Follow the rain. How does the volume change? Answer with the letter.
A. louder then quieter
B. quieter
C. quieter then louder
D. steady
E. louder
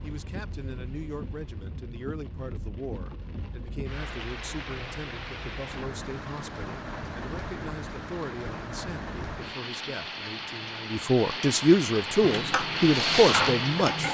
E.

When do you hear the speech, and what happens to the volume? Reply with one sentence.
You can hear the speech from 0.0 to 14.1 s, getting louder.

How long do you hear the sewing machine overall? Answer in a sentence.
The sewing machine can be heard for 2 seconds in total.